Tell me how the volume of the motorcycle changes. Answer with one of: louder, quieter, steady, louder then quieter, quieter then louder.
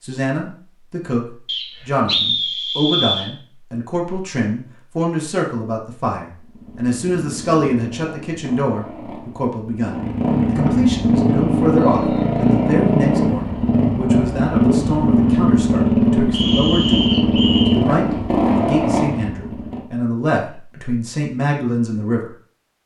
louder.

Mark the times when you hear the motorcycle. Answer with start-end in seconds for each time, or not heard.
6.4-19.9.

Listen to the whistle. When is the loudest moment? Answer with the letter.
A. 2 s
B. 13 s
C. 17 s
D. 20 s
A.